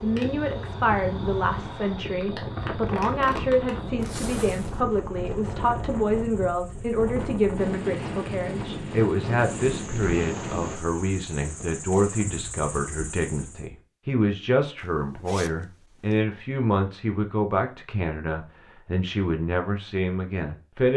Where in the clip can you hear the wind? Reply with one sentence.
You can hear the wind from 0.0 to 10.8 s.